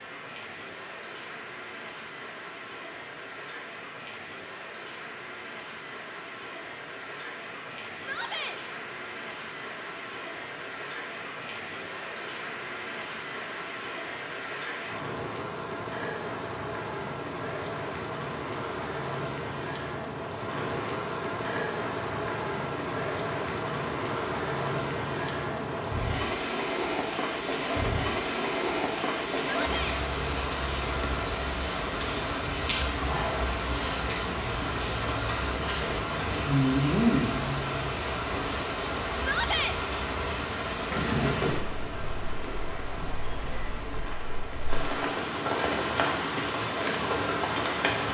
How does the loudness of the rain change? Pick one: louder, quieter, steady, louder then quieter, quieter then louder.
louder.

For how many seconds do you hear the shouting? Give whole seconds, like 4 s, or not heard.
2 s.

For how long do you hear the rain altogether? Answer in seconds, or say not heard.
48 s.